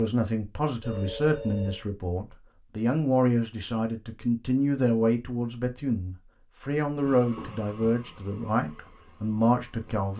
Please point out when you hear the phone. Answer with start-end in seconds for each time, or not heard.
0.8-1.9.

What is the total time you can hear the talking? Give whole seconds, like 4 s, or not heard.
10 s.